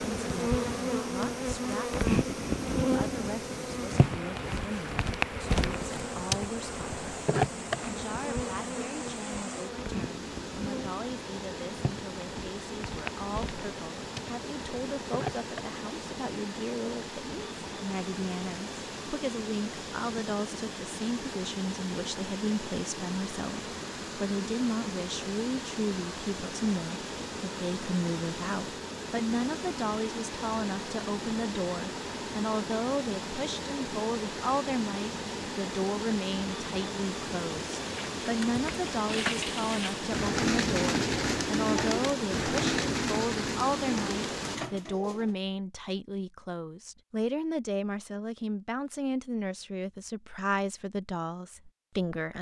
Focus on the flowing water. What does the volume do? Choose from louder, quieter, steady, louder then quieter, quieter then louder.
louder.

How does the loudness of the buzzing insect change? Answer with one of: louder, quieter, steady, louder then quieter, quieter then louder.
quieter.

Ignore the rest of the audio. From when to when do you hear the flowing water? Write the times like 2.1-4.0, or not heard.
0.0-44.6.